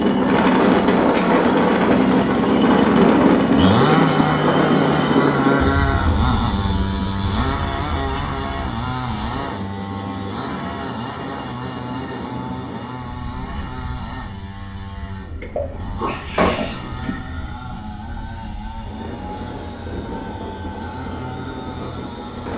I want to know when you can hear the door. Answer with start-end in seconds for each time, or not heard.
not heard.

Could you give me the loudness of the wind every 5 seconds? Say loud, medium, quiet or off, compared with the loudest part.
loud, medium, quiet, quiet, quiet.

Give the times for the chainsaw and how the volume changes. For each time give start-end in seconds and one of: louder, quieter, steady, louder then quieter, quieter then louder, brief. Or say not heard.
0.0-22.5 quieter.